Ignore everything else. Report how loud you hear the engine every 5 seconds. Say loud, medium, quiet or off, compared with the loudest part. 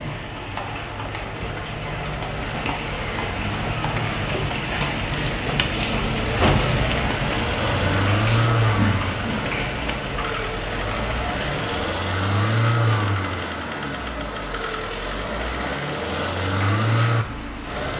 medium, loud, loud, loud.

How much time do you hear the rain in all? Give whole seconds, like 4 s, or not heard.
18 s.